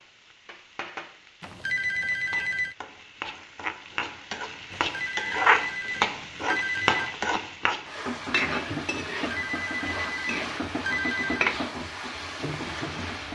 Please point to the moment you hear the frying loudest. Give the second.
6 s.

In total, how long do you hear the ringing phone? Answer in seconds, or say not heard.
6 s.